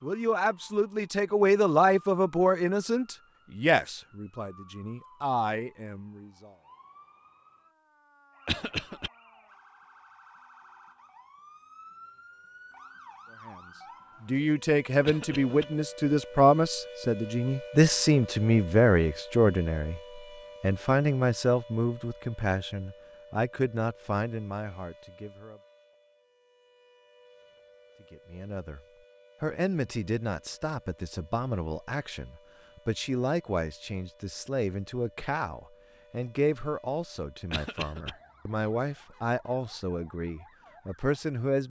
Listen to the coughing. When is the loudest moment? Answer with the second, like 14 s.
9 s.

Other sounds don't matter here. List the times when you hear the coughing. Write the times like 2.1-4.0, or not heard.
8.4-9.1, 15.1-15.7, 37.5-38.1.